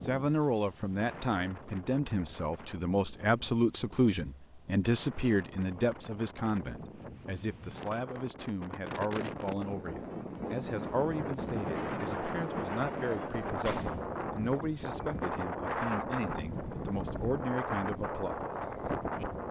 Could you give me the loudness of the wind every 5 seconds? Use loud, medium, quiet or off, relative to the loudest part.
quiet, medium, loud, loud.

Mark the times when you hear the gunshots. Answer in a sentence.
The gunshots can be heard from 13.7 to 14.1 s.